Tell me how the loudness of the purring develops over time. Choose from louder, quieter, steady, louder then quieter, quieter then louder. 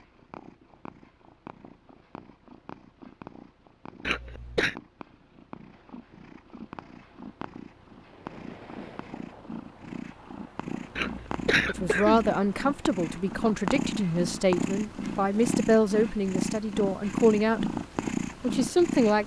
louder.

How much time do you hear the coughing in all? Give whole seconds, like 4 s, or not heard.
2 s.